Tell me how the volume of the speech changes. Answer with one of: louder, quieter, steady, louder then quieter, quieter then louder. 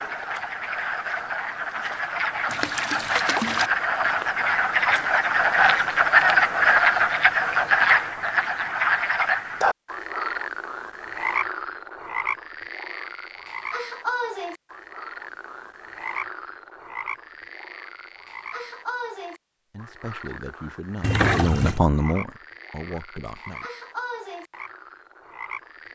louder then quieter.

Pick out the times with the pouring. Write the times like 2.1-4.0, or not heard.
2.5-3.7, 21.0-21.8.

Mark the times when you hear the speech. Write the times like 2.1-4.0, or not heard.
19.7-23.7.